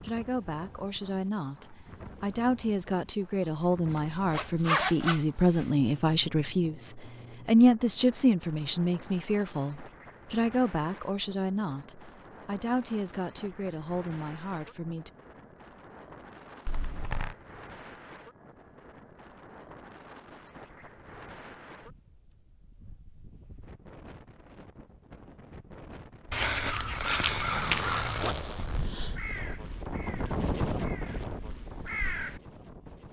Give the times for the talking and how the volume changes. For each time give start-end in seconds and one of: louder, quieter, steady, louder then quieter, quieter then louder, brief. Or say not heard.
0.0-15.1 louder then quieter.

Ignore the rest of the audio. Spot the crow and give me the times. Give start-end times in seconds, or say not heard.
26.3-32.4.